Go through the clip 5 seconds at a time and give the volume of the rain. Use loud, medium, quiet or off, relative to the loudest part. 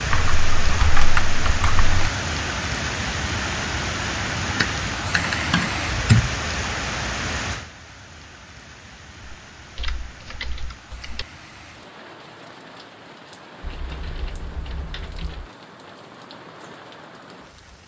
loud, loud, quiet, quiet.